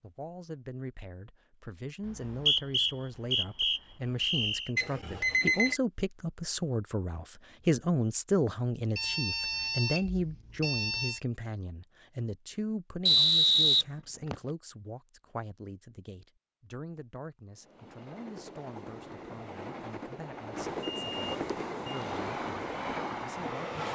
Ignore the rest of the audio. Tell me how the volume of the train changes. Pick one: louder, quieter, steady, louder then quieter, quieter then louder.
louder.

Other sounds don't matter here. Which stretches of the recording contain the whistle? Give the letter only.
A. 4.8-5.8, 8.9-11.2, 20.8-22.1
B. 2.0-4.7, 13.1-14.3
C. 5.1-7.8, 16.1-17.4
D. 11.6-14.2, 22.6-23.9
B.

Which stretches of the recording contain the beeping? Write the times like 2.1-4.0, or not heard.
4.8-5.8, 8.9-11.2, 20.8-22.1.